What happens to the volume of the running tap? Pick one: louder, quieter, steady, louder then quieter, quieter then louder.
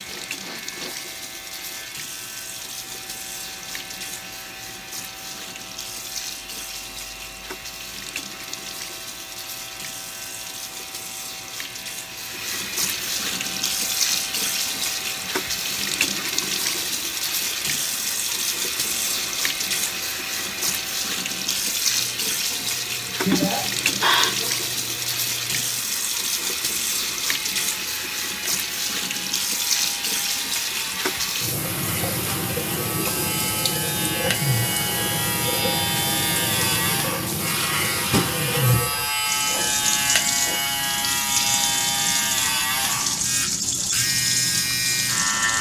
louder.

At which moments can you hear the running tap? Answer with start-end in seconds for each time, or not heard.
0.0-45.5.